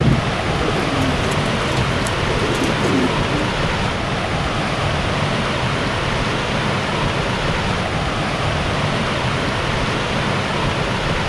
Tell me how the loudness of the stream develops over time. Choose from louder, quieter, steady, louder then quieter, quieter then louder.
steady.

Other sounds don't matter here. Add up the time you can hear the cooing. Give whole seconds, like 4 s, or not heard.
3 s.